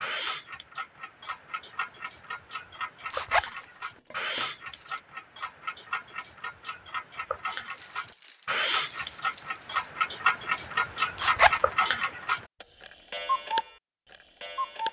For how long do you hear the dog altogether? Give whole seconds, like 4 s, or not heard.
not heard.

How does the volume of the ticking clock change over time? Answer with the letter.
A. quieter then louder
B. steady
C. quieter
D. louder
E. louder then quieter
D.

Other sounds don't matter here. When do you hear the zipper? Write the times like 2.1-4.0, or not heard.
3.1-3.6, 11.2-11.7.